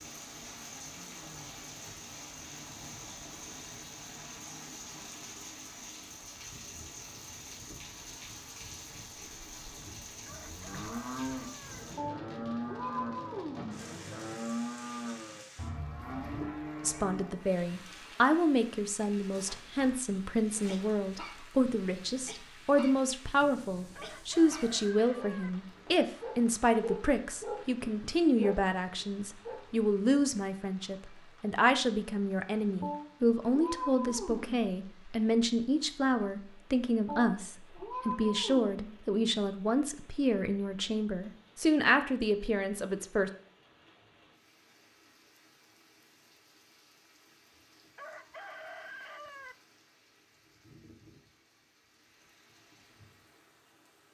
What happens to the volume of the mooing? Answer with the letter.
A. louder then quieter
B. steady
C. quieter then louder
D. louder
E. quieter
B.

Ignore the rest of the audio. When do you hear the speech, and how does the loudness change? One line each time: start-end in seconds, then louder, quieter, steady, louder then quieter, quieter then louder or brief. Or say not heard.
16.8-43.3 steady.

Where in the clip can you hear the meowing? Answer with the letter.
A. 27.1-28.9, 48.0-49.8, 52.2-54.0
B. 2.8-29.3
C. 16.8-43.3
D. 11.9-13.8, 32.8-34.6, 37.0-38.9
D.